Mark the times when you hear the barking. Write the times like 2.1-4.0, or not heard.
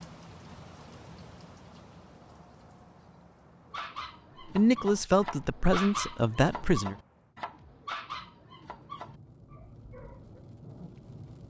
3.7-10.4.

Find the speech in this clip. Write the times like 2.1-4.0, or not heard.
4.5-7.0.